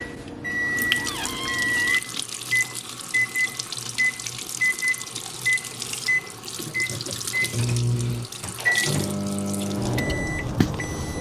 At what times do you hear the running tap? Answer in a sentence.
The running tap can be heard from 0.1 to 11.1 s.